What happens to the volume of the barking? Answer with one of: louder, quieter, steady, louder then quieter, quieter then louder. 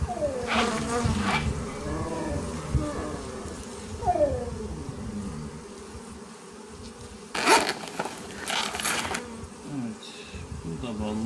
louder then quieter.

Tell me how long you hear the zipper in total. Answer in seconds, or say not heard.
3 s.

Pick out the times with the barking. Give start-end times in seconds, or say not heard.
0.0-5.6.